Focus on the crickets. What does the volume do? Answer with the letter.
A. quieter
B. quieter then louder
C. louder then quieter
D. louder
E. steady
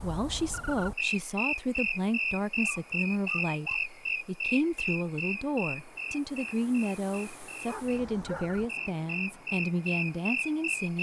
B.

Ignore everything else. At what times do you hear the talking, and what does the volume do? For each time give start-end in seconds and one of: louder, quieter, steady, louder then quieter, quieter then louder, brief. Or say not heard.
0.0-10.9 steady.